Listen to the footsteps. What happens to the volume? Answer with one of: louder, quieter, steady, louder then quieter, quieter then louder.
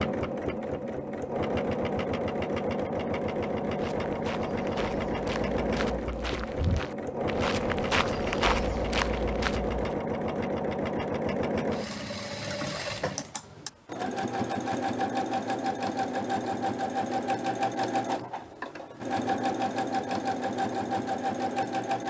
louder.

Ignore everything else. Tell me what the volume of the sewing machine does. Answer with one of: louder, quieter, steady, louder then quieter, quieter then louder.
steady.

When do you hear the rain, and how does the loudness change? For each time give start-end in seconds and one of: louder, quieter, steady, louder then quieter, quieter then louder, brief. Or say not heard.
not heard.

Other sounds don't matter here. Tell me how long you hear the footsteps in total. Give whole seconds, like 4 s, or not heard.
6 s.